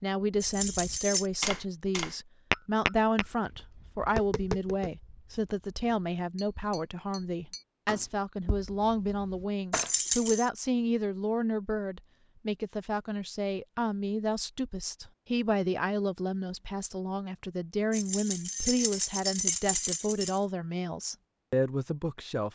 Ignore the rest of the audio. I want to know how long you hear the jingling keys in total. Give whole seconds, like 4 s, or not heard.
4 s.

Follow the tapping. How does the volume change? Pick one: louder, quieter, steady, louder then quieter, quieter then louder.
quieter then louder.